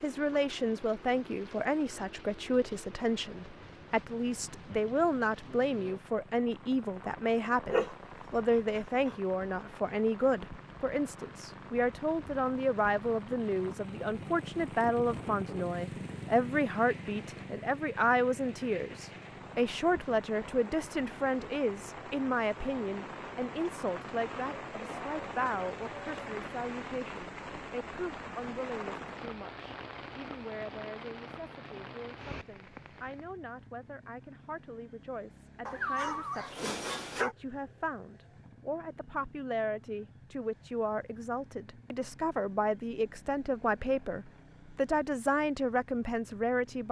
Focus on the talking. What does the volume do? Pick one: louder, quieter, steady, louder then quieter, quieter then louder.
quieter then louder.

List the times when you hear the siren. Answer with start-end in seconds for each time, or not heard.
not heard.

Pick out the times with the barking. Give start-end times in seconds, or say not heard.
7.7-9.2, 35.6-37.4.